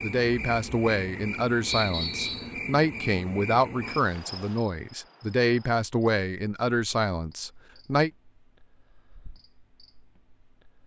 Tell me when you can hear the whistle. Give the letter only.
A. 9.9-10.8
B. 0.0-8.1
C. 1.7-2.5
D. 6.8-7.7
C.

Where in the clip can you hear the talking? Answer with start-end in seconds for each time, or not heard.
0.0-8.1.